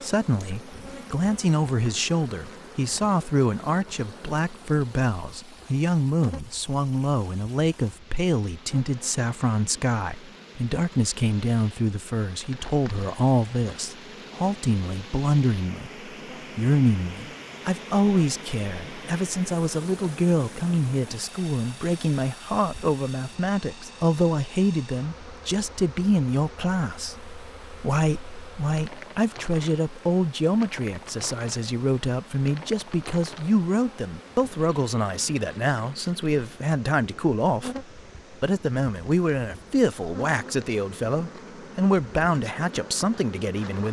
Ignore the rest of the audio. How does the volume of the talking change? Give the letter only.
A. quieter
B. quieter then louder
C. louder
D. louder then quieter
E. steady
E.